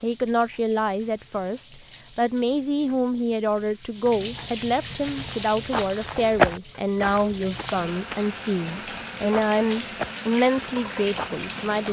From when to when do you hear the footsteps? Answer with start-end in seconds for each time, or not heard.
5.0-11.8.